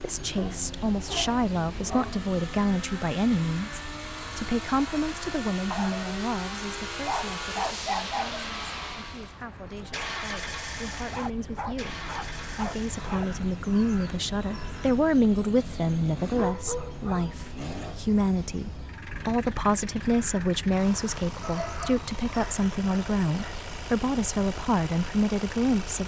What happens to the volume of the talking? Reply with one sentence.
The volume of the talking goes down, then up.